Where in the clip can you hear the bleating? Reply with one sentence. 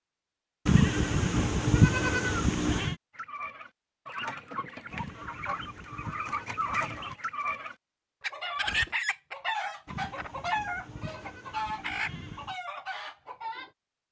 The bleating can be heard from 0.7 to 3.0 s, from 4.9 to 7.2 s and from 9.8 to 12.6 s.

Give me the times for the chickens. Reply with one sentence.
You can hear the chickens from 3.1 to 13.7 s.